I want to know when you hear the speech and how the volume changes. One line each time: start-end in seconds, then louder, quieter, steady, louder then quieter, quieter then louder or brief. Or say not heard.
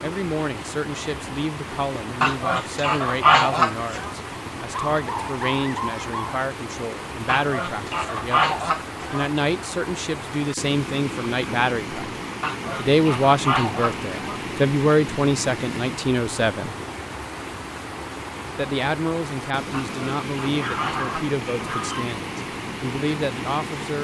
0.0-16.8 louder
18.6-23.9 quieter then louder.